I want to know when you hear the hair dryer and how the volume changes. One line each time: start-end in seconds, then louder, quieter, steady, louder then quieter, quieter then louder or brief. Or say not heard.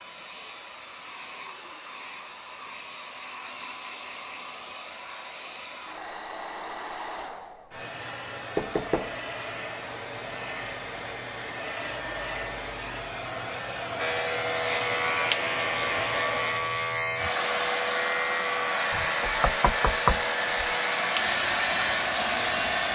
0.0-22.8 louder.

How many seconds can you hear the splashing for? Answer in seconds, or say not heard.
not heard.